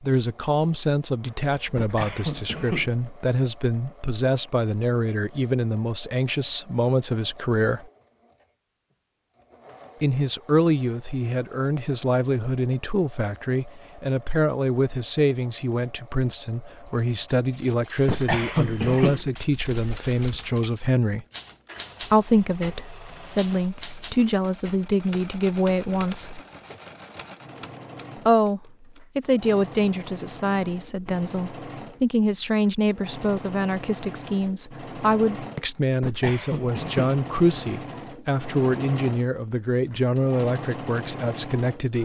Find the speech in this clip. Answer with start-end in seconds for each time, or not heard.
0.0-7.8, 10.0-21.2, 22.0-26.4, 28.2-42.0.